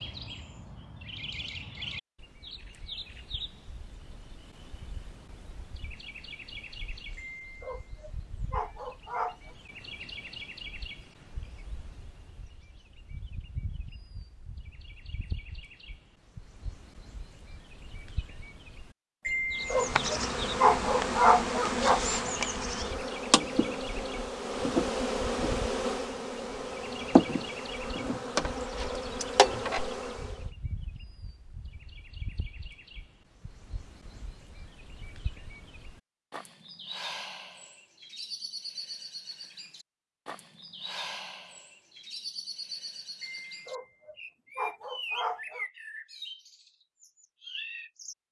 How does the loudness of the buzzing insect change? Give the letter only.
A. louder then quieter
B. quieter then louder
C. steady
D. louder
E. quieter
C.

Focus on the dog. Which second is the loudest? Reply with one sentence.
The volume of the dog peaks at 21 seconds.